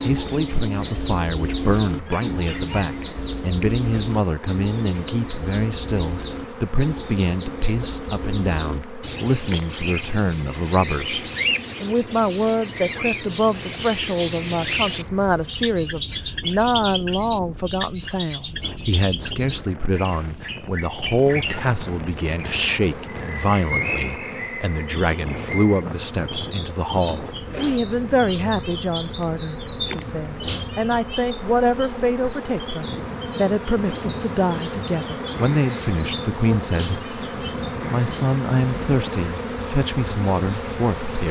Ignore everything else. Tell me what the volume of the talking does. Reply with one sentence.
The loudness of the talking stays about the same.